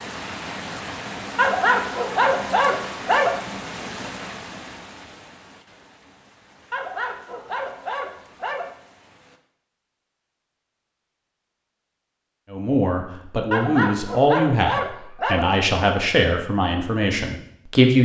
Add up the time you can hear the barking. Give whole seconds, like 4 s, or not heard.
6 s.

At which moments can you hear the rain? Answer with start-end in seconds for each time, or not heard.
0.0-9.4.